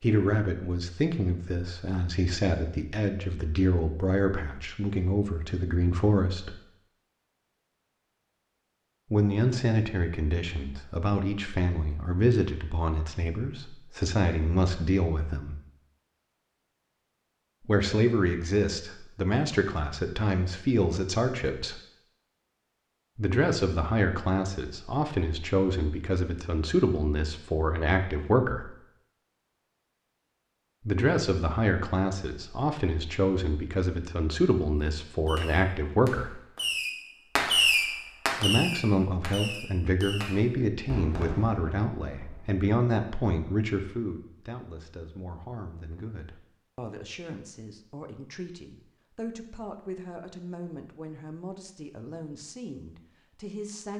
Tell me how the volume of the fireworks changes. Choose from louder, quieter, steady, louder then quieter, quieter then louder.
louder then quieter.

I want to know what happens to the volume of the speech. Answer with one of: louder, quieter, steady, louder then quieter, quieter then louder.
quieter.